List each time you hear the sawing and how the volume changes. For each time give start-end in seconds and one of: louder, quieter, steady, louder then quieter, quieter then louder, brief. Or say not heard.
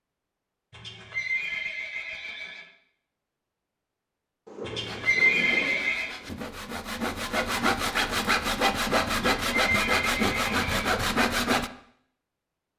4.8-11.7 louder.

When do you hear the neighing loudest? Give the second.
5 s.